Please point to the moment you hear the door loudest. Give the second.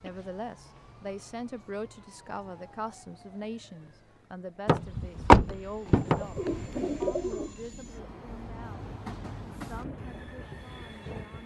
5 s.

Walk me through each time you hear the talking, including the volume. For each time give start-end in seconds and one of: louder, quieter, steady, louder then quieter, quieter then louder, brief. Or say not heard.
0.0-8.8 quieter
9.6-11.4 brief.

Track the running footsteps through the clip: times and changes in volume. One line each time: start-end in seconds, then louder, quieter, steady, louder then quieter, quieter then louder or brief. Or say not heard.
not heard.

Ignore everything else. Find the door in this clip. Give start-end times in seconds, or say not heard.
4.7-6.7.